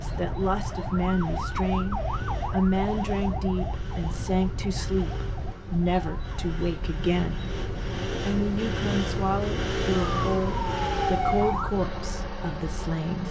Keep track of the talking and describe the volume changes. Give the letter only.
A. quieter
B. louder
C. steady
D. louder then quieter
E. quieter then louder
C.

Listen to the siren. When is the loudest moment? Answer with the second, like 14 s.
11 s.